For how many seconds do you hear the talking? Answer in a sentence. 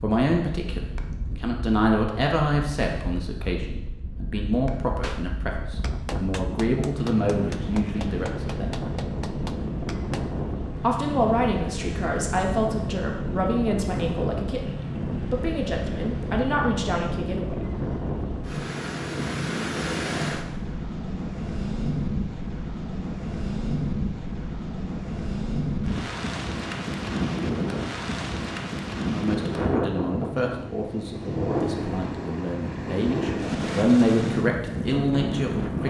The talking can be heard for 22 seconds in total.